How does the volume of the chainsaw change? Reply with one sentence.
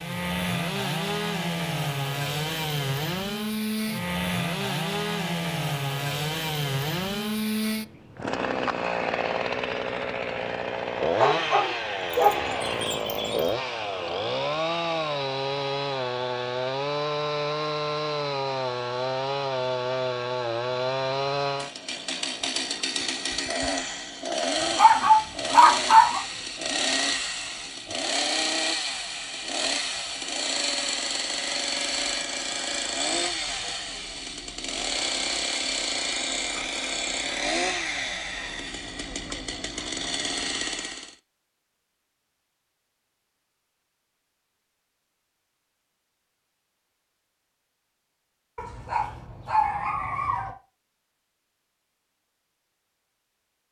The volume of the chainsaw stays about the same.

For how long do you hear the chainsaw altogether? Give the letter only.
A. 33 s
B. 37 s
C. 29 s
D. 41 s
D.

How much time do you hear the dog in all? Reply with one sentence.
You can hear the dog for 6 seconds altogether.